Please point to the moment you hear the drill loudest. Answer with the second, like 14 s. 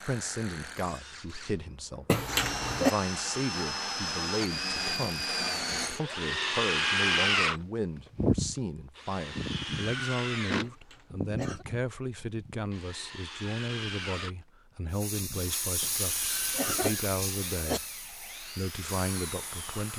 7 s.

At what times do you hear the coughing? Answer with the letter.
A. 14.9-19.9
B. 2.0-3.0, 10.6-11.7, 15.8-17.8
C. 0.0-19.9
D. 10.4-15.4
B.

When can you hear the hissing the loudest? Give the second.
16 s.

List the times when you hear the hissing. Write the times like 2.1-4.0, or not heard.
14.9-19.9.